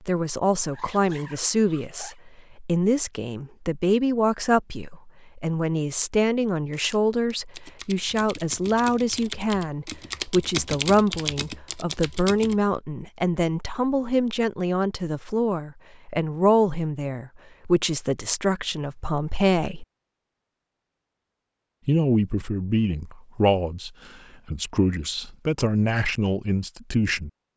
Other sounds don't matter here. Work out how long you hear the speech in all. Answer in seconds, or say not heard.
25 s.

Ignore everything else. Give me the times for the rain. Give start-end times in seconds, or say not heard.
not heard.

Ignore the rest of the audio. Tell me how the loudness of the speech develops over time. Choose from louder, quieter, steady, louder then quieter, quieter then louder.
steady.